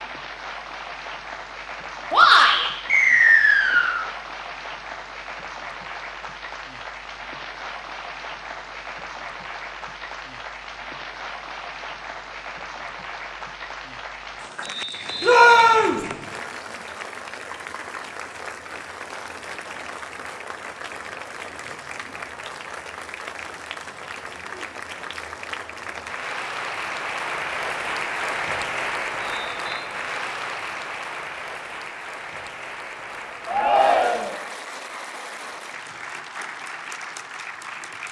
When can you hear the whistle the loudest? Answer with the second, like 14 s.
3 s.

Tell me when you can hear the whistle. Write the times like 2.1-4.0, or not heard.
2.9-4.0, 14.6-16.3, 29.1-29.9.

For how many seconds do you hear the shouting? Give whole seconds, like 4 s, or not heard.
2 s.